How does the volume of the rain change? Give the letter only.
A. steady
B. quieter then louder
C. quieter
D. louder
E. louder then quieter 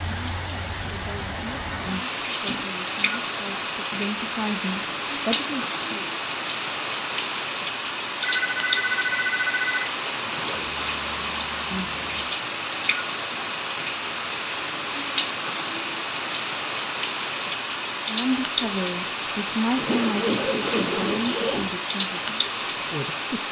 A.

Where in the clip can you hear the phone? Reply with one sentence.
The phone can be heard from 8.2 to 9.8 s.